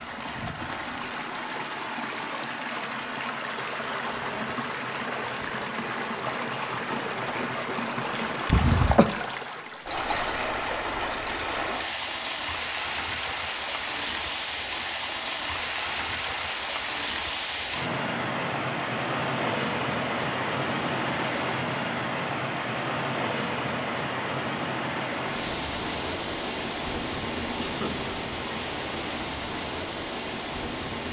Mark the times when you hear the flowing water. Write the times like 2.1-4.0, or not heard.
0.0-31.0.